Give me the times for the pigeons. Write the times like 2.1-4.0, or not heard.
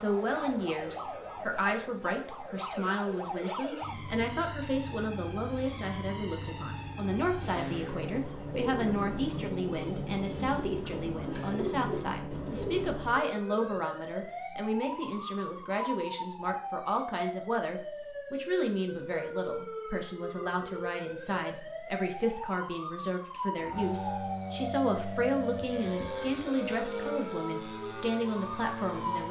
7.3-12.9.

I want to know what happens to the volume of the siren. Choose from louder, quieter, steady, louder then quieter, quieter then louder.
steady.